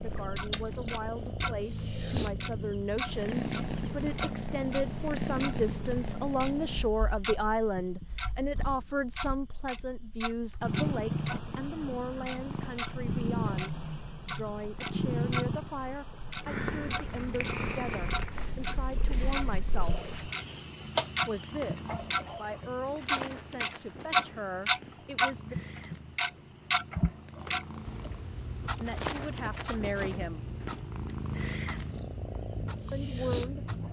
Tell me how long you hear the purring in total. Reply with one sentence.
You can hear the purring for 34 seconds altogether.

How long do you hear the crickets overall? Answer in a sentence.
The crickets can be heard for 34 seconds in total.